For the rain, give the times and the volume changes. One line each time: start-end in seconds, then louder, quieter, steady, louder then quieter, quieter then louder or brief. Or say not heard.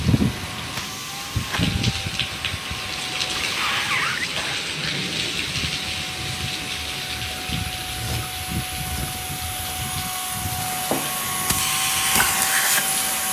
0.0-13.2 quieter.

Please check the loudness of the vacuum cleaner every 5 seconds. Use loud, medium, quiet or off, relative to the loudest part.
medium, medium, loud.